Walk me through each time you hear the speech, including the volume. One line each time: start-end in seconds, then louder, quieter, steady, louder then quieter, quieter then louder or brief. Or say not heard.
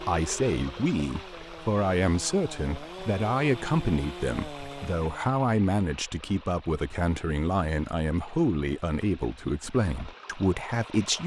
0.1-11.2 steady.